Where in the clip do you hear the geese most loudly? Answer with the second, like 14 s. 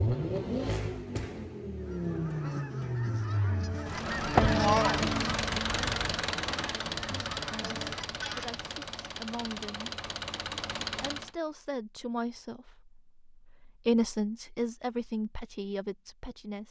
5 s.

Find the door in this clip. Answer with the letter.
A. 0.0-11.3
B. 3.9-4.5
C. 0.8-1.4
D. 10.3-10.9
B.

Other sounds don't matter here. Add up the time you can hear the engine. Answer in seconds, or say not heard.
11 s.